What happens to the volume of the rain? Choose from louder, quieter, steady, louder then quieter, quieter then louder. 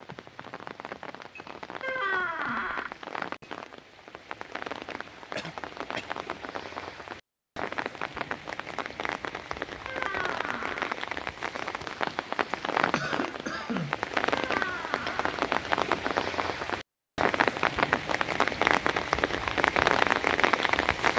louder.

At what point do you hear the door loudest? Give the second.
2 s.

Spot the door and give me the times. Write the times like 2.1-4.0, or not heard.
1.8-2.9, 9.8-10.9, 14.3-15.4.